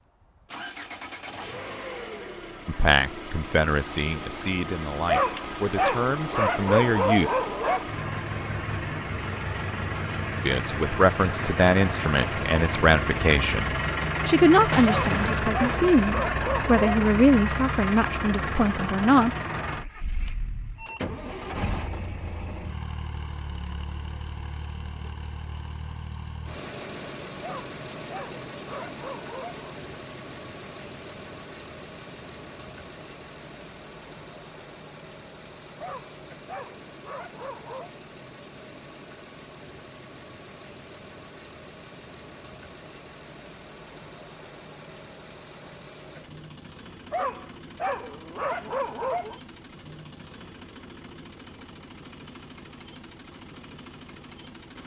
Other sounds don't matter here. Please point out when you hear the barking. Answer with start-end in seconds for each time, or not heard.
5.0-7.9, 14.8-17.0, 27.4-29.6, 35.8-37.9, 47.1-49.4.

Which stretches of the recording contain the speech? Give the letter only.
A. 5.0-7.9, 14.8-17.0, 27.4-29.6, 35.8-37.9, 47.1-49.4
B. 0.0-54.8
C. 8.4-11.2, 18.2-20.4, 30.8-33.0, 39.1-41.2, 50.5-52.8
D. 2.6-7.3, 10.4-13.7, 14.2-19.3
D.